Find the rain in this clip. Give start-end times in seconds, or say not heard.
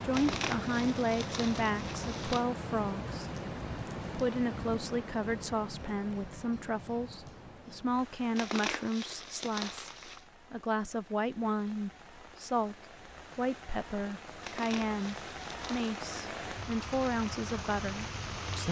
0.0-18.6.